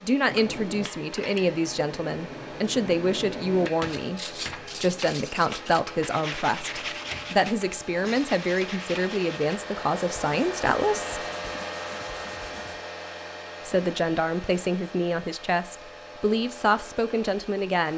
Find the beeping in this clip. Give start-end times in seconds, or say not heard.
not heard.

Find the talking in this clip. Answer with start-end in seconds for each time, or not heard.
0.0-11.2, 13.7-17.9.